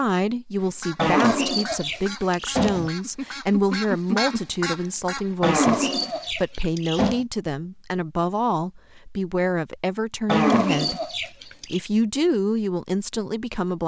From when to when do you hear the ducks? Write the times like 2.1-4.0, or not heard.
0.6-5.5.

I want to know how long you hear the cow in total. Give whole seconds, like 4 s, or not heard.
5 s.